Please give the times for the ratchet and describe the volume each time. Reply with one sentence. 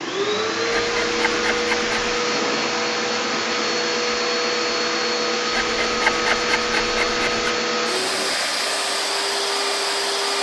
You can't hear the ratchet here.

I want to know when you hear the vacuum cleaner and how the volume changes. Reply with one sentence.
You can hear the vacuum cleaner from 0.0 to 10.3 s, at a steady volume.